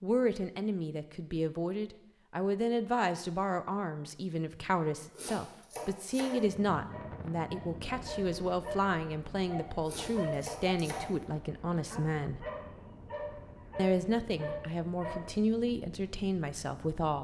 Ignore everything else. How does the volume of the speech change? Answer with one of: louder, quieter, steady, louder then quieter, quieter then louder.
steady.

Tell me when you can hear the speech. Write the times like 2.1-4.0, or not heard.
0.0-12.4, 13.8-17.1.